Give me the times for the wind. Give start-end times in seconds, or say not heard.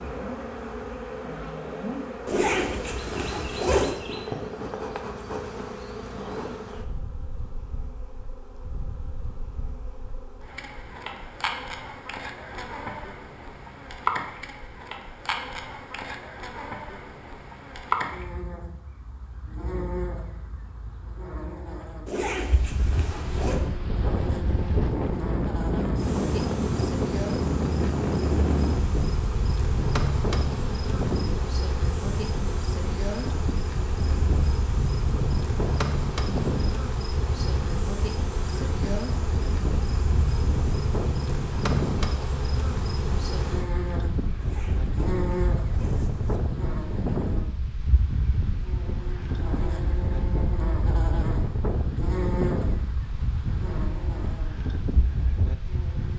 22.6-56.1.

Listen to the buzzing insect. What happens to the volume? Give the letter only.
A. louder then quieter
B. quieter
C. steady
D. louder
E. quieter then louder
C.